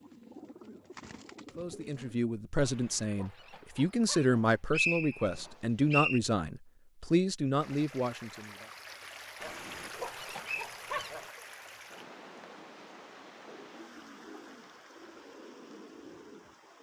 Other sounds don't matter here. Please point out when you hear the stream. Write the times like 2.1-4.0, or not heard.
7.5-16.7.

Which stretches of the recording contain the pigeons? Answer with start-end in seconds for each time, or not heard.
0.0-2.2, 13.4-16.7.